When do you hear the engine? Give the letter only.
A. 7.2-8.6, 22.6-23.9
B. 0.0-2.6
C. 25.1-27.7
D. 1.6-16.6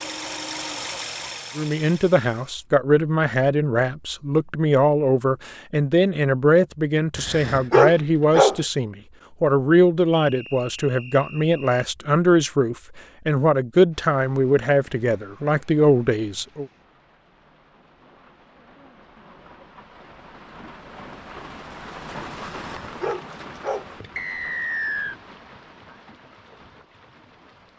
B.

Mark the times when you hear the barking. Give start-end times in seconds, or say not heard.
7.2-8.6, 22.6-23.9.